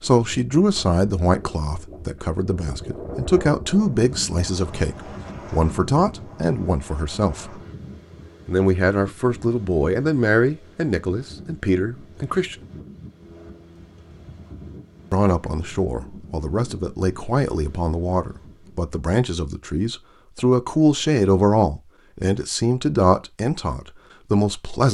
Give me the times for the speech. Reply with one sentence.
You can hear the speech from 0.0 to 7.6 s, from 8.4 to 12.6 s and from 15.1 to 24.8 s.